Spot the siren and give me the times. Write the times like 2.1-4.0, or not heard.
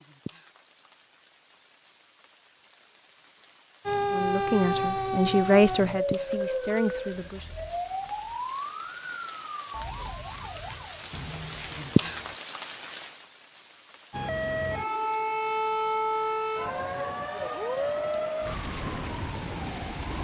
3.9-12.4, 14.1-20.1.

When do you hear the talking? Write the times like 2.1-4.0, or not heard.
4.1-7.5.